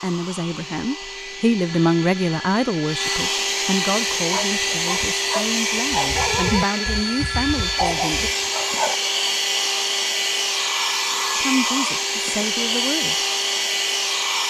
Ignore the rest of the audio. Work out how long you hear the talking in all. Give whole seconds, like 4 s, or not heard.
10 s.